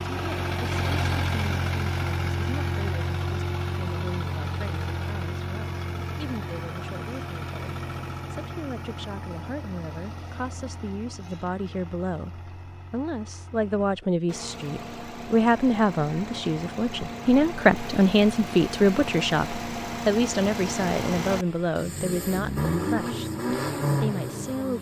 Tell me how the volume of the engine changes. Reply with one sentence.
The loudness of the engine goes down, then up.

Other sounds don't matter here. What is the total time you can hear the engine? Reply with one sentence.
The engine can be heard for 25 seconds in total.